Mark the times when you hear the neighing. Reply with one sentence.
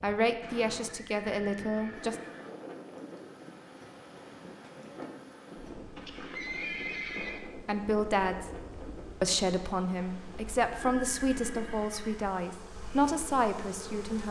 You can hear the neighing from 0.8 to 2.5 s, from 6.0 to 7.4 s and from 10.7 to 12.3 s.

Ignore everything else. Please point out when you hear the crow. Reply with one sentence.
The crow can't be heard in this clip.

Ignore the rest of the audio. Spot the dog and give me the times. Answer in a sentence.
You can't hear the dog here.